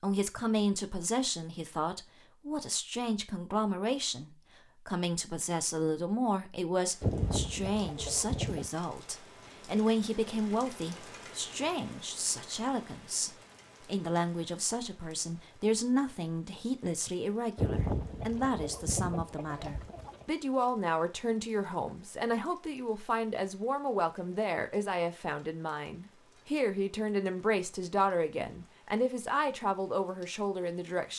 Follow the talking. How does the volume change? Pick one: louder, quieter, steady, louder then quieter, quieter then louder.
steady.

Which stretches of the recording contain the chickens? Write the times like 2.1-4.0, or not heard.
7.0-8.7, 17.6-20.2.